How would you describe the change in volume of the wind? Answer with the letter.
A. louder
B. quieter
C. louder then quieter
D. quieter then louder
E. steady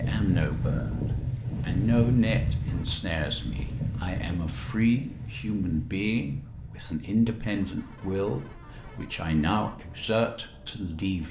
B.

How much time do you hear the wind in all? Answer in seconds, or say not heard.
11 s.